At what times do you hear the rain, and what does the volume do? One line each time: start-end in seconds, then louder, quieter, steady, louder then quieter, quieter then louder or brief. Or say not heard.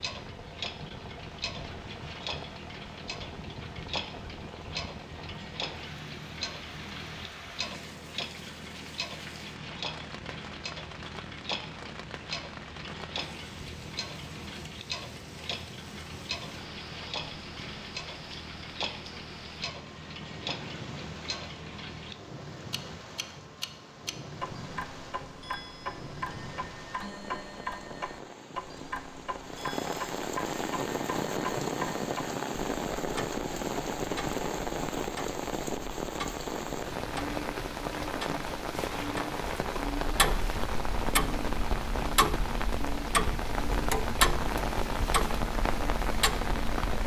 0.0-47.0 louder.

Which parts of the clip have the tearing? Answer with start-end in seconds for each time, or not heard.
not heard.